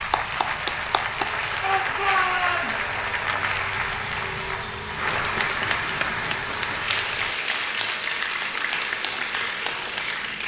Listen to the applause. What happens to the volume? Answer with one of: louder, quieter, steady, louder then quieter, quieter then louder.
steady.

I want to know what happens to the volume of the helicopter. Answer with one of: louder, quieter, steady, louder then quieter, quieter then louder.
steady.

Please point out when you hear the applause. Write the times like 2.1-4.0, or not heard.
0.0-10.4.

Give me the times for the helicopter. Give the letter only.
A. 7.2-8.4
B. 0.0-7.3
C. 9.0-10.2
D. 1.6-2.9
B.